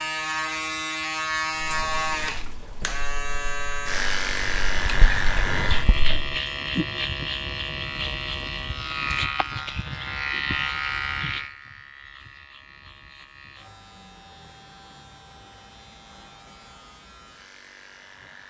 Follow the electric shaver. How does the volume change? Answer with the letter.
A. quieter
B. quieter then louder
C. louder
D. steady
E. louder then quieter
A.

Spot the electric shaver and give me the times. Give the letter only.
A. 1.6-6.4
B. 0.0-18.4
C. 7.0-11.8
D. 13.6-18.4
B.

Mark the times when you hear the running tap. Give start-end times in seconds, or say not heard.
1.6-6.4.